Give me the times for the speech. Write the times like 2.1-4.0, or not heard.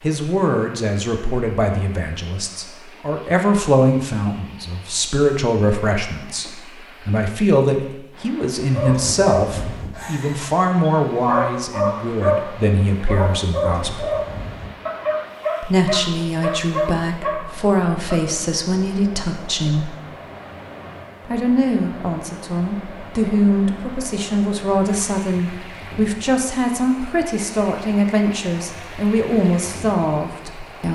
0.0-14.1, 15.6-20.0, 21.2-30.8.